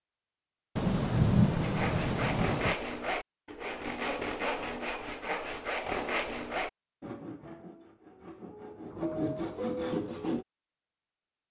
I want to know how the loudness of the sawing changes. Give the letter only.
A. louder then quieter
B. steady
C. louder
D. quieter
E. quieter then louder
E.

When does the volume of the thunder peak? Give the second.
1 s.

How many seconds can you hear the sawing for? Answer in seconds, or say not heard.
9 s.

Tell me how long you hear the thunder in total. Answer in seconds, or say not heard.
2 s.